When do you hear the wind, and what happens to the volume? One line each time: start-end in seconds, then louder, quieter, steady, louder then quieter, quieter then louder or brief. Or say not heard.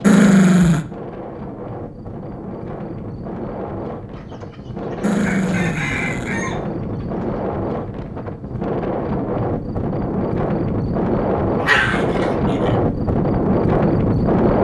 0.0-14.6 louder.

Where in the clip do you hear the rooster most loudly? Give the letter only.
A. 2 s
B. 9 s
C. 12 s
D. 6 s
D.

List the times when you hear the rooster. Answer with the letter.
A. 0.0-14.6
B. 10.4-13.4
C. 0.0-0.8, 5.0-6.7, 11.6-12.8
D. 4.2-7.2
D.